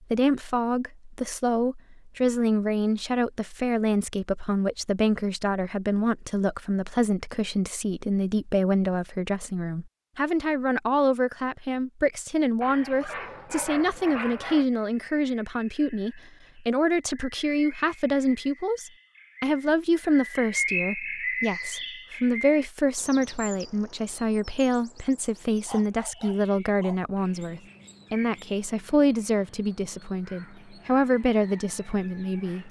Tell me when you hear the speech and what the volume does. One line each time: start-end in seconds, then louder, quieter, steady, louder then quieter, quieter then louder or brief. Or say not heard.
0.1-32.6 steady.